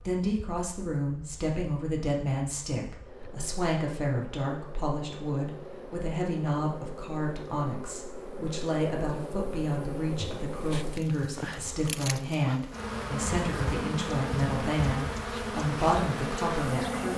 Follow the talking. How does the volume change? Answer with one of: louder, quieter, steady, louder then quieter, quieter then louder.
steady.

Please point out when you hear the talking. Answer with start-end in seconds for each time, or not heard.
0.1-17.1.